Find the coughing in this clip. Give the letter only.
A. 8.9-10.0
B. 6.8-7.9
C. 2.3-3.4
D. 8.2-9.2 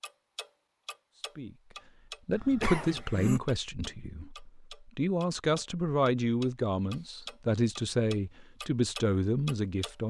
C.